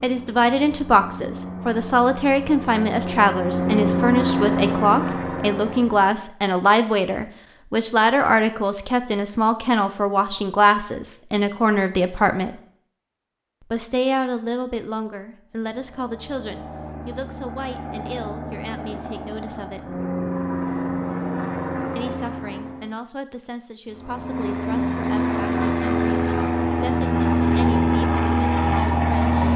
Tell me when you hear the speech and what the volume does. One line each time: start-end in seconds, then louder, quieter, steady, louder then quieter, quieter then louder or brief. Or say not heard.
0.0-12.6 steady
13.7-20.0 quieter
21.9-29.4 steady.